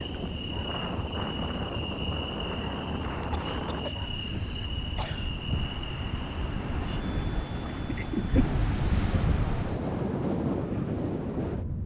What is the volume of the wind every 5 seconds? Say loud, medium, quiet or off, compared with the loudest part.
medium, loud, loud.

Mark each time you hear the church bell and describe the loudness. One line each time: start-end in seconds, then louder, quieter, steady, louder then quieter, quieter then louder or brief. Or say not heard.
not heard.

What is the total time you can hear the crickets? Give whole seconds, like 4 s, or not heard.
10 s.